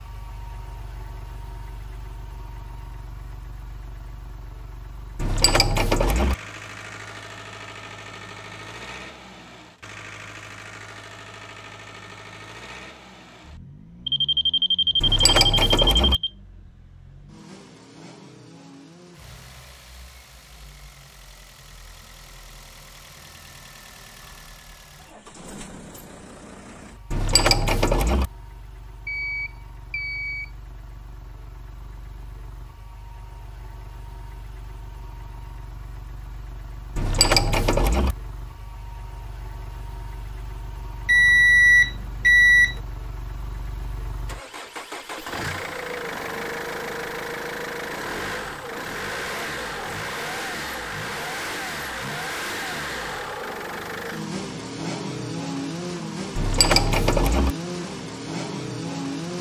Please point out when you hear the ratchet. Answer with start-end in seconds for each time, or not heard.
5.2-6.3, 15.0-16.2, 27.1-28.3, 37.0-38.1, 56.4-57.5.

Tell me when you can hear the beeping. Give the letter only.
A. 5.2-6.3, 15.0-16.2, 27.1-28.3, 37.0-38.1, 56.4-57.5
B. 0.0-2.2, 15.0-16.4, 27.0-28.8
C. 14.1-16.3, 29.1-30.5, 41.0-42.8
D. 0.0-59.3
C.